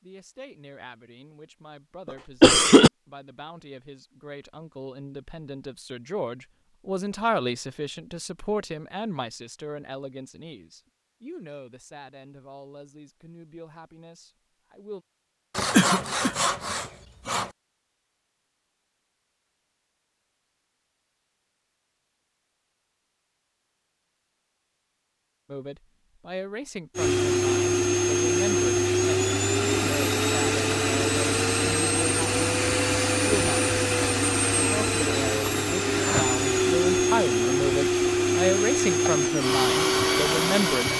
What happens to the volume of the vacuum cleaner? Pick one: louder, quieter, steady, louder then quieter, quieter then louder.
steady.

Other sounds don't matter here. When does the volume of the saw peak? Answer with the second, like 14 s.
16 s.